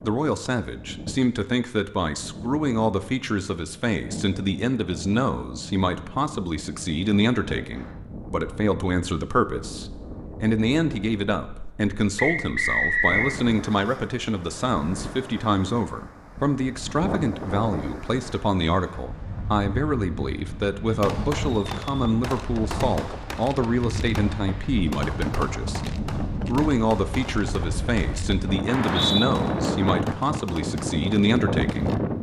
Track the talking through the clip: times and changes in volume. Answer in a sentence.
You can hear the talking from 0.0 to 31.9 s, at a steady volume.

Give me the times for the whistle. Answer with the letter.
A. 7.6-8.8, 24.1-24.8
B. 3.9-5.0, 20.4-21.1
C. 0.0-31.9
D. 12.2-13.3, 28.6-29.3
D.